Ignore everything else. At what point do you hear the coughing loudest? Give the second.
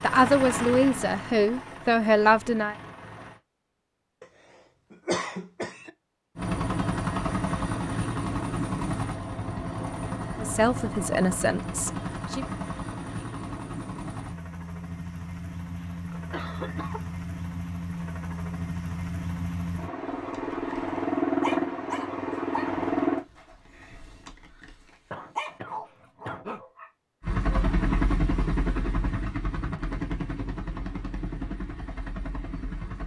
5 s.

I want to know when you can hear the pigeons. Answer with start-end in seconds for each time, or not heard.
not heard.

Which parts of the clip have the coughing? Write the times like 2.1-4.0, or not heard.
4.9-5.9, 15.8-17.0, 25.1-26.6.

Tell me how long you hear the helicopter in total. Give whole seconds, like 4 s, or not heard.
26 s.